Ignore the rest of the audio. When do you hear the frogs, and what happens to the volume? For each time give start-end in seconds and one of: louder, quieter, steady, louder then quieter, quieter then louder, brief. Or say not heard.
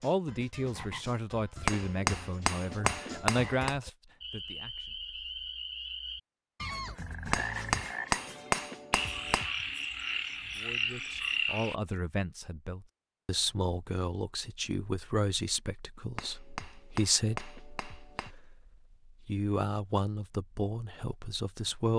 0.0-11.8 louder.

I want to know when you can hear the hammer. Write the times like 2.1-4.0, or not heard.
1.6-3.8, 7.3-9.5, 16.1-18.4.